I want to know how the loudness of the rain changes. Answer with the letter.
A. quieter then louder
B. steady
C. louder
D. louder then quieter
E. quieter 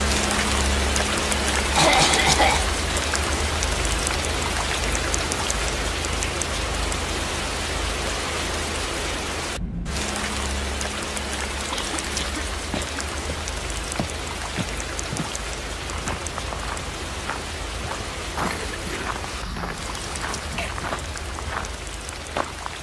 E.